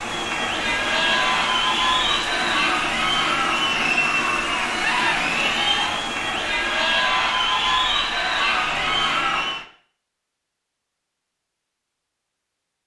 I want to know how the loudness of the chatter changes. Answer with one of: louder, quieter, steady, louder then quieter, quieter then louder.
steady.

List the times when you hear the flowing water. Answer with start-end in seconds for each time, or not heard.
0.0-9.7.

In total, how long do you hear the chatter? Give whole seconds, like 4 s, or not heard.
10 s.